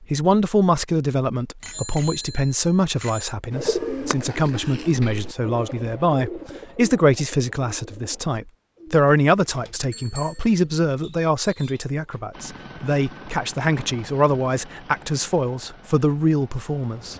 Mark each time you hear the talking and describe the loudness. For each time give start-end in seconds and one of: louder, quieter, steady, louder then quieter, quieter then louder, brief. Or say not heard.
0.0-17.1 steady.